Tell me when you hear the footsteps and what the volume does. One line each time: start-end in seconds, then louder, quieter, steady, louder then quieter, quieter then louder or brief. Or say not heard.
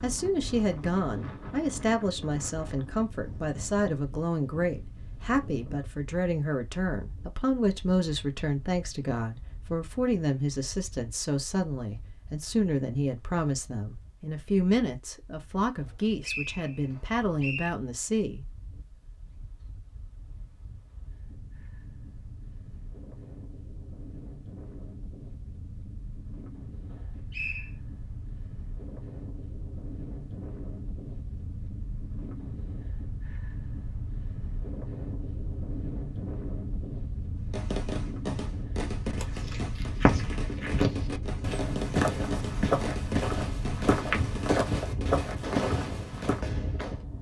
39.1-46.4 steady.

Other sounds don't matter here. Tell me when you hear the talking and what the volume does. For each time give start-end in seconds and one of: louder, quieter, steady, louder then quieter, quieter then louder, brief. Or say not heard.
0.0-18.4 steady.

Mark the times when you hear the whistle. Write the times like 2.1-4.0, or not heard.
15.8-17.7, 26.9-27.7.